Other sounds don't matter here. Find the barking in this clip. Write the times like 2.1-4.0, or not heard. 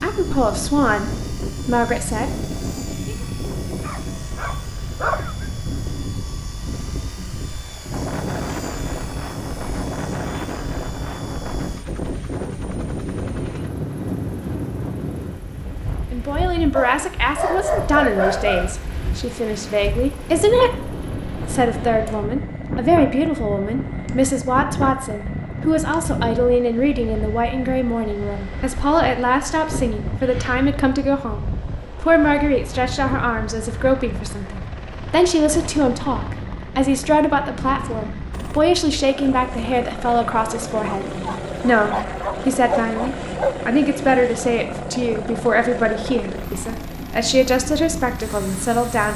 3.8-5.5, 16.8-18.8, 41.0-43.6.